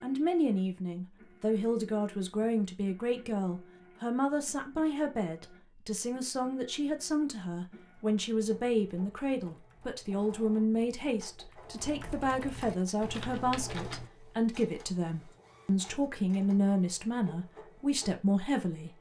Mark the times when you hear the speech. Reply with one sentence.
You can hear the speech from 0.0 to 18.9 s.